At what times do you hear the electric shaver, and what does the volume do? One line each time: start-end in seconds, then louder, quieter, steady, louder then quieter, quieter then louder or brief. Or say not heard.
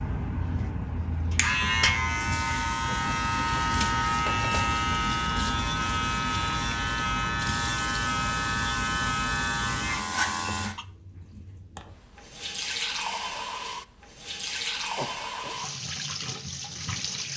0.0-10.8 steady.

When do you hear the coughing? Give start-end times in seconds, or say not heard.
4.2-4.8, 14.9-15.6.